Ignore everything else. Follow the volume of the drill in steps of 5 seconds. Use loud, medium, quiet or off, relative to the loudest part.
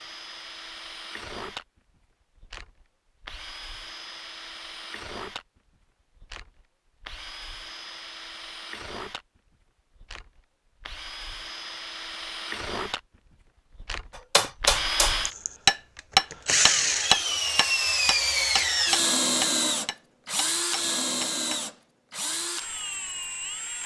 quiet, quiet, medium, loud, medium.